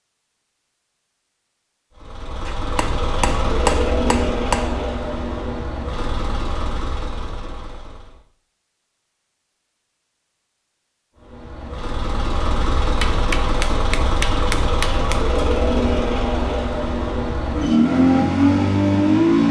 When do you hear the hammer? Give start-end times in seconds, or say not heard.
2.5-4.8, 13.0-15.2.